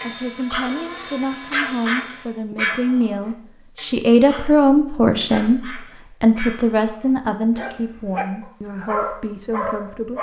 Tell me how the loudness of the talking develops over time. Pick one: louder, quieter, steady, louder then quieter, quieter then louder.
louder then quieter.